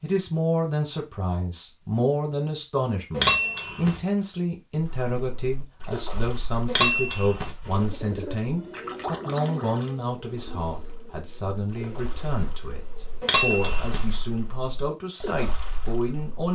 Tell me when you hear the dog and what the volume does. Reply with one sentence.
The dog can't be heard in this clip.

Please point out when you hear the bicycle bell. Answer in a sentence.
The bicycle bell can be heard from 3.1 to 4.0 s, from 6.7 to 7.5 s and from 13.2 to 14.1 s.